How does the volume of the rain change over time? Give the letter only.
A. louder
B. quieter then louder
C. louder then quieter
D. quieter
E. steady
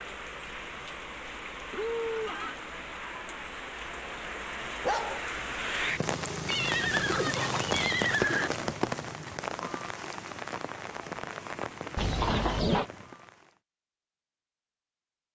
C.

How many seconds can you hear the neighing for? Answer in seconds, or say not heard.
4 s.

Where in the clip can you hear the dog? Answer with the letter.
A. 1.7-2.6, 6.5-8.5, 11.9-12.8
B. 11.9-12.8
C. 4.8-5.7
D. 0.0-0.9
C.